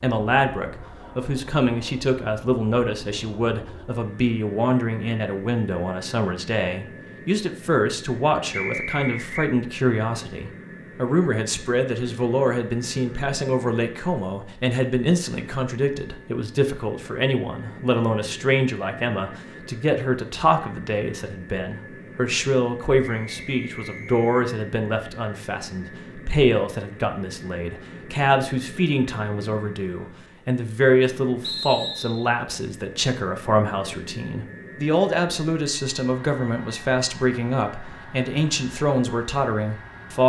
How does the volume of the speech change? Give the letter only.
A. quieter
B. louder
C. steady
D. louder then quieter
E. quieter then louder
C.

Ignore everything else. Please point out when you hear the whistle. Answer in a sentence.
The whistle can be heard from 8.5 to 9.5 s, from 23.0 to 24.4 s and from 31.4 to 32.3 s.